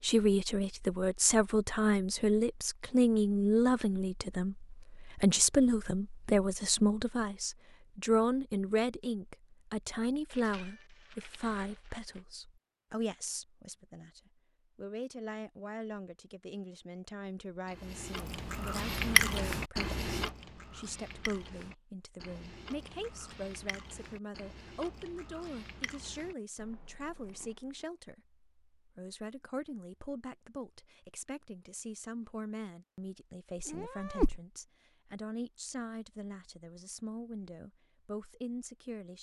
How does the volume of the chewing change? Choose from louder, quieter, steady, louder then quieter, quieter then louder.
quieter.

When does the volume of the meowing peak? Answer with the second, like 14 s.
34 s.